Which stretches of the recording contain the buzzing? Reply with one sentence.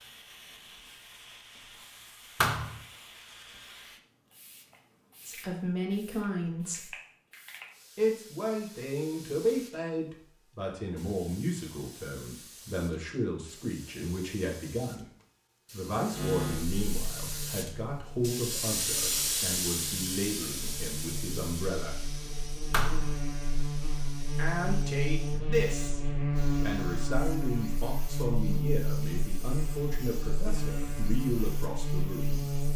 You can hear the buzzing from 16.1 to 32.7 s.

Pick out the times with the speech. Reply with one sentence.
You can hear the speech from 5.2 to 6.9 s, from 8.0 to 15.1 s, from 15.7 to 22.1 s, from 24.4 to 26.0 s and from 26.6 to 32.5 s.